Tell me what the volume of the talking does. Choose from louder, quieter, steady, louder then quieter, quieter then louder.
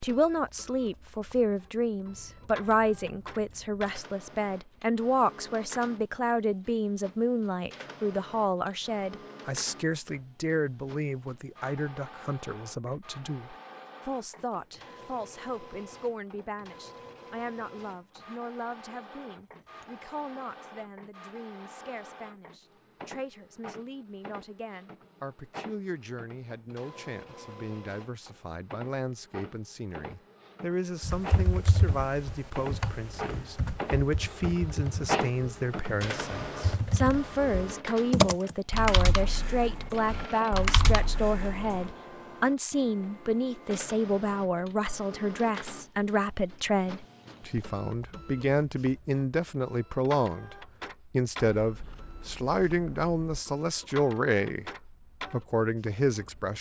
quieter then louder.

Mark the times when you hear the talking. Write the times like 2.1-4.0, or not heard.
0.0-56.5.